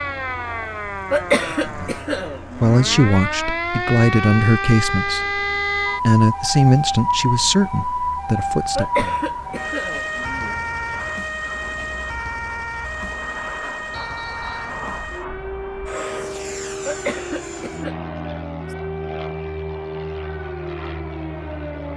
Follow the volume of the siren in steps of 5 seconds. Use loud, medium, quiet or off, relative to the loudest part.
loud, loud, medium, medium, medium.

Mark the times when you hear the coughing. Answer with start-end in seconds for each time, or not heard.
1.1-3.1, 8.8-10.6, 16.9-17.9.